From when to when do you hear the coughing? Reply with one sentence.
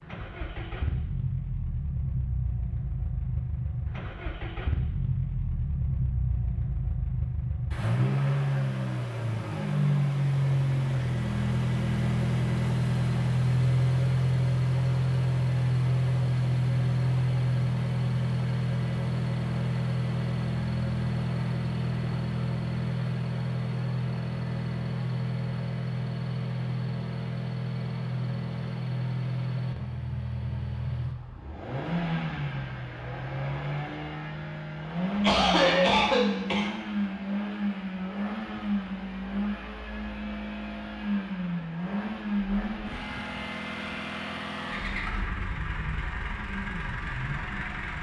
You can hear the coughing from 35.2 to 36.7 s.